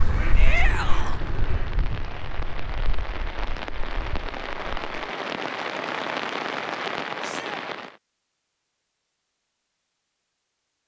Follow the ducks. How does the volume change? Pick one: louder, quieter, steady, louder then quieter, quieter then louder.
quieter.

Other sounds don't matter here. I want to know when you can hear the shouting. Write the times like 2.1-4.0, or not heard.
0.3-1.2, 7.2-7.7.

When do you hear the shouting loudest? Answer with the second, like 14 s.
1 s.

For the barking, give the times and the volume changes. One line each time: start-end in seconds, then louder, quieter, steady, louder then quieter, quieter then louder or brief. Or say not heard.
not heard.